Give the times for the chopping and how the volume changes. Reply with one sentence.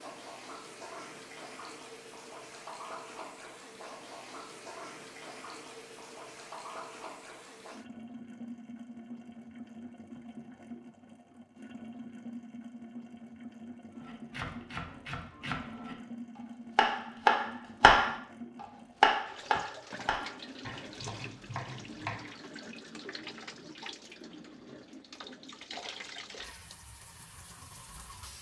The chopping can be heard from 13.9 to 22.2 s, getting louder then quieter.